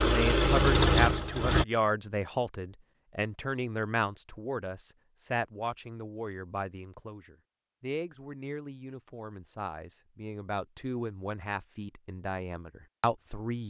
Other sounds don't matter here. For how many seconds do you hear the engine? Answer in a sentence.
You can hear the engine for 2 seconds altogether.